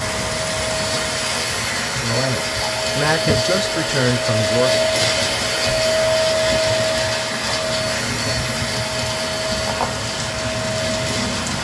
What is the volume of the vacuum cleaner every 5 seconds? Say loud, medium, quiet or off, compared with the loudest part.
loud, loud, medium.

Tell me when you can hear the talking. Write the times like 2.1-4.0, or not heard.
2.0-4.8.